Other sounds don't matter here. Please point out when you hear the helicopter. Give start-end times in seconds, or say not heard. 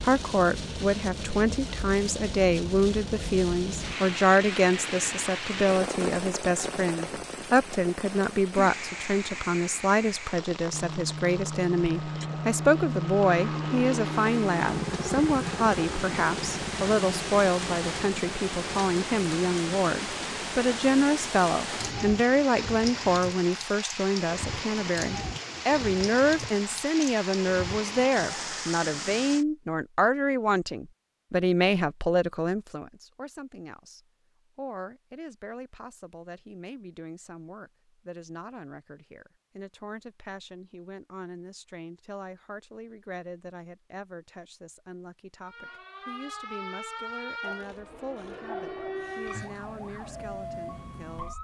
10.7-22.1.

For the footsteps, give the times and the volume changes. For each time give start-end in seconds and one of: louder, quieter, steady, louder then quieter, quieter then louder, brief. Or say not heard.
not heard.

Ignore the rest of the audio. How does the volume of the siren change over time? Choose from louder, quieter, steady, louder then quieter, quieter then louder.
steady.